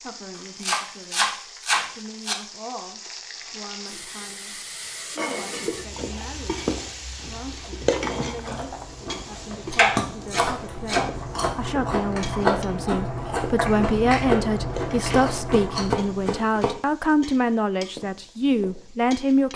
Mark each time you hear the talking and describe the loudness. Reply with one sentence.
The talking can be heard from 0.0 to 19.5 s, getting louder.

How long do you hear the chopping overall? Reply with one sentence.
You can hear the chopping for 5 seconds altogether.